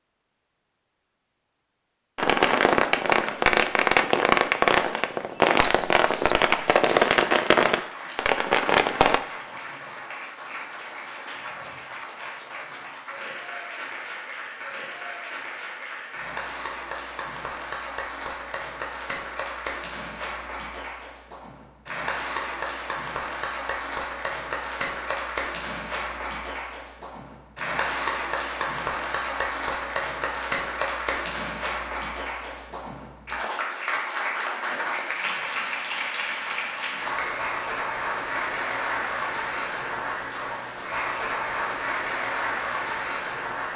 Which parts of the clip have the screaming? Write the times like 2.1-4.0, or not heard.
not heard.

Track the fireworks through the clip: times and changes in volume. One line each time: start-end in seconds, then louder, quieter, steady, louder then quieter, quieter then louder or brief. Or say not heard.
2.1-9.2 steady.